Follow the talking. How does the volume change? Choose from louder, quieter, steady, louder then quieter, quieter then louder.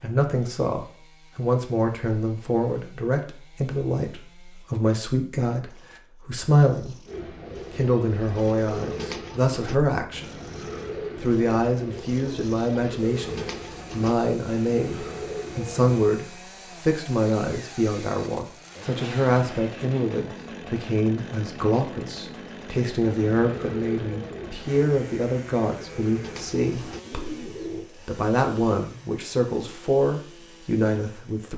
steady.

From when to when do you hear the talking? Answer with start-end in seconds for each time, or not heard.
0.0-10.3, 11.2-31.5.